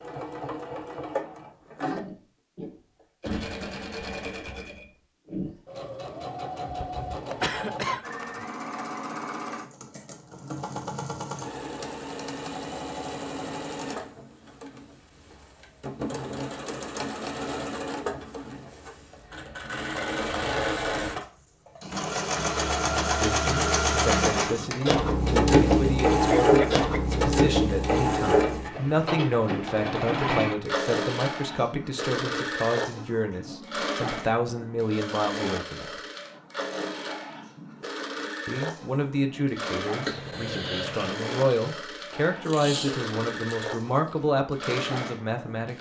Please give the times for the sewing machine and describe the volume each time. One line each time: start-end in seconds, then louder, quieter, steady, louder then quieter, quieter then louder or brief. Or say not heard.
0.0-45.7 louder then quieter.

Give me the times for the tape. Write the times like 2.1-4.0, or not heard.
42.4-44.2.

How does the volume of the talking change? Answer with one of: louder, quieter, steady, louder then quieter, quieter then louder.
steady.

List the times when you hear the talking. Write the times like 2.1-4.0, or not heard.
23.1-36.0, 38.5-45.7.